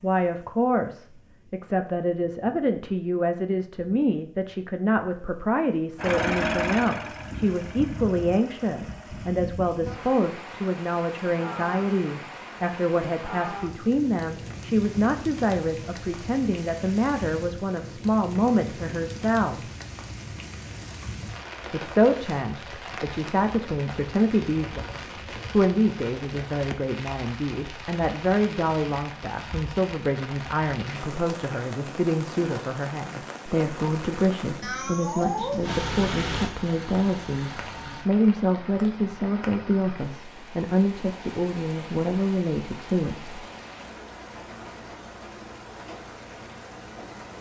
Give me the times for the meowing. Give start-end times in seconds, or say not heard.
34.6-35.8.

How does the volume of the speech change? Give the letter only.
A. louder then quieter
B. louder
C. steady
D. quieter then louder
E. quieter
C.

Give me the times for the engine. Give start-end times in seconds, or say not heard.
6.0-9.4, 35.6-38.1.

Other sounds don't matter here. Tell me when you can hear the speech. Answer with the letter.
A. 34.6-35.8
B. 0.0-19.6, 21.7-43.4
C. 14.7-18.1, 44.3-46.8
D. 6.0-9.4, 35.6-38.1
B.